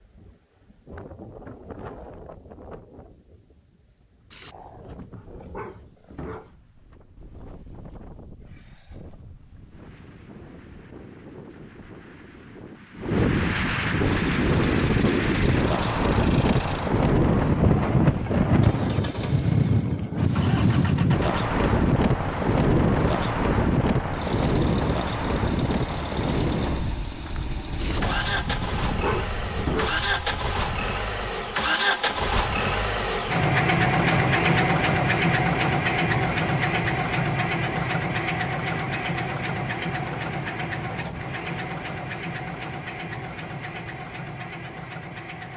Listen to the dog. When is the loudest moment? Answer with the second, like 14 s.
30 s.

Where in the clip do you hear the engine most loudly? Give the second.
34 s.